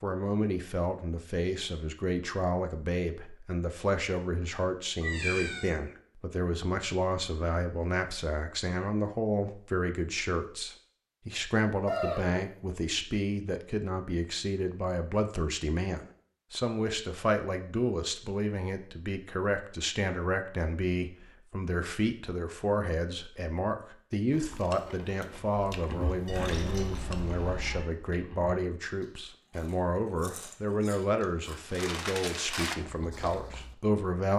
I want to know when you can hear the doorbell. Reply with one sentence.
You can't hear the doorbell here.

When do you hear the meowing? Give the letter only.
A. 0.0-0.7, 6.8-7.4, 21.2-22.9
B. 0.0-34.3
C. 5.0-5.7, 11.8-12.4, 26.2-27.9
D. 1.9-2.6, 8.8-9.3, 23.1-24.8
C.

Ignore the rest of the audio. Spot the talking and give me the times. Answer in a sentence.
You can hear the talking from 0.0 to 34.3 s.